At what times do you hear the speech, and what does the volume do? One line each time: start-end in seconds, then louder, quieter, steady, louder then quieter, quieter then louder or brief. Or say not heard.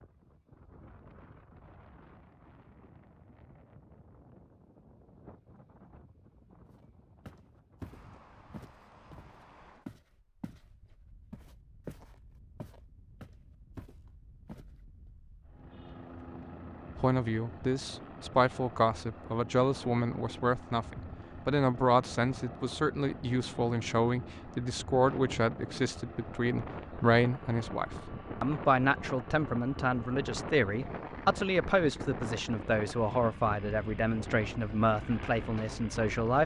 16.9-36.4 steady.